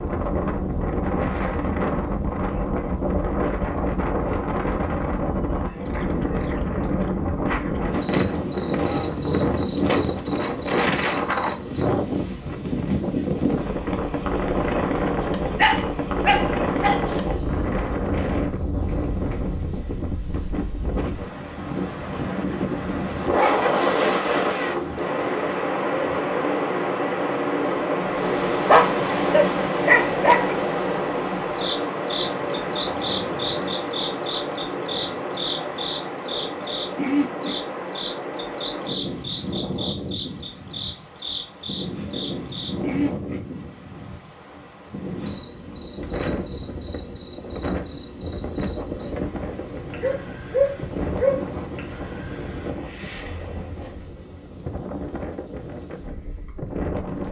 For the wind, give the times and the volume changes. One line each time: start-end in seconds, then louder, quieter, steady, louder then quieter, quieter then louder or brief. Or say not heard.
0.0-57.2 quieter.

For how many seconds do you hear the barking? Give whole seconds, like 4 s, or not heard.
5 s.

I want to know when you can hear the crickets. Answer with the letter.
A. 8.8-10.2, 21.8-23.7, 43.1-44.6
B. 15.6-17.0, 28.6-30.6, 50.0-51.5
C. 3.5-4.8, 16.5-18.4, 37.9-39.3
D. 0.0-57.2
D.